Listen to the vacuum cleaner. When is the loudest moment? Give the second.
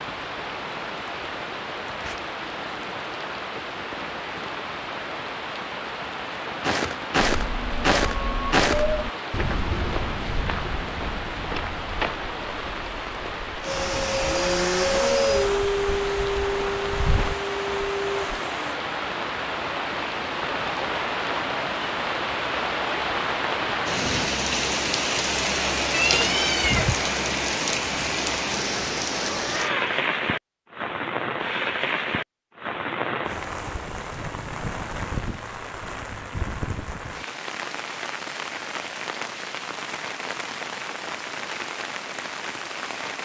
15 s.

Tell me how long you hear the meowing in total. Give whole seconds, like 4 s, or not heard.
4 s.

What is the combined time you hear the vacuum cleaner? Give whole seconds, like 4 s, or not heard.
5 s.